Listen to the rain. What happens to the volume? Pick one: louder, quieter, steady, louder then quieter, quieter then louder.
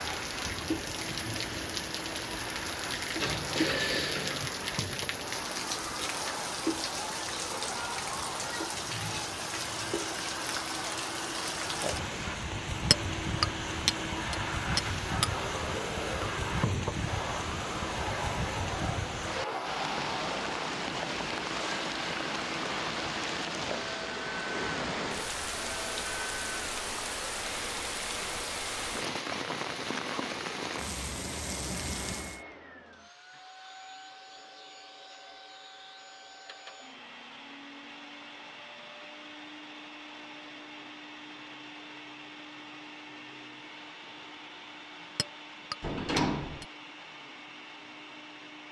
steady.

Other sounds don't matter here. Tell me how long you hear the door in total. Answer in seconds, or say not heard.
2 s.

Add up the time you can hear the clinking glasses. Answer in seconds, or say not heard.
4 s.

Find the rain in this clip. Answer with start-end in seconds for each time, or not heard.
0.0-32.4.